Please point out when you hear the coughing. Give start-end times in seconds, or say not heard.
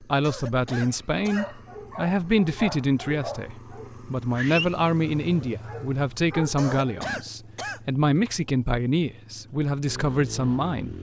0.2-1.4, 6.5-7.8.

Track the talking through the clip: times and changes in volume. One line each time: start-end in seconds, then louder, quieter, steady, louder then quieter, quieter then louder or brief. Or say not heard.
0.0-10.9 steady.